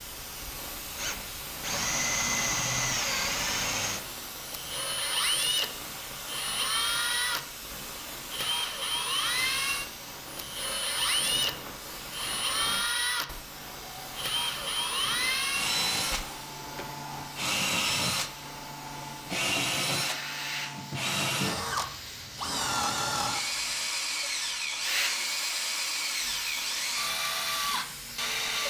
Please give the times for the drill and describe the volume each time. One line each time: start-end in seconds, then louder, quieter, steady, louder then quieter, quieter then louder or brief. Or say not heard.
0.1-28.6 steady.